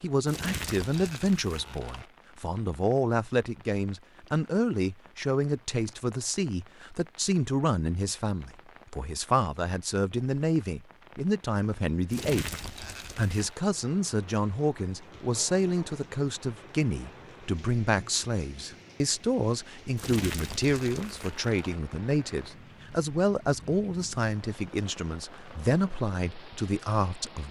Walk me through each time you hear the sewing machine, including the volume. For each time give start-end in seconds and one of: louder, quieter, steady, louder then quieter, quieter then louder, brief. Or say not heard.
not heard.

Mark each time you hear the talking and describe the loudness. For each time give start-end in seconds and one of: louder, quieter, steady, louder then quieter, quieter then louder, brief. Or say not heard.
0.0-12.6 steady
13.2-27.4 steady.